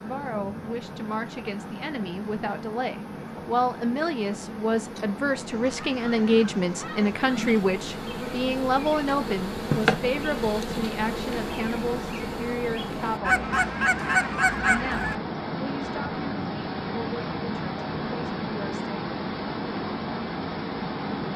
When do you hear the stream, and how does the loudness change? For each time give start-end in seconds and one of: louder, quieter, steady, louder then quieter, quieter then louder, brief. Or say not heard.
0.0-21.3 louder.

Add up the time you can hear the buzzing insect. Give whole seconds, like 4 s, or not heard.
13 s.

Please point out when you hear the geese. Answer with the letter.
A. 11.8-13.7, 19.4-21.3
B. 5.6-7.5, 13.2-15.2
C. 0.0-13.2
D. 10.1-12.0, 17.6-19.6
B.